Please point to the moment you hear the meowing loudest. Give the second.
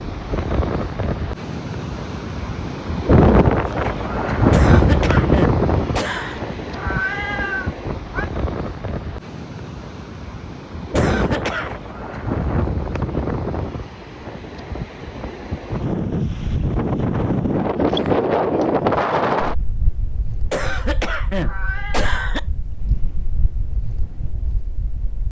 7 s.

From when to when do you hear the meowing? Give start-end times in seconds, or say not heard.
6.7-8.3, 21.3-22.1.